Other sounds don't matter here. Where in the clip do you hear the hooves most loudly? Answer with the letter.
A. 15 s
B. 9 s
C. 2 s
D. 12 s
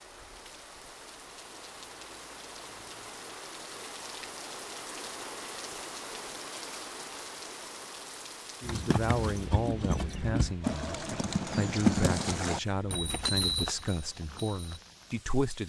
D.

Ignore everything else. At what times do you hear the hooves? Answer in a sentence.
The hooves can be heard from 8.6 to 14.8 s.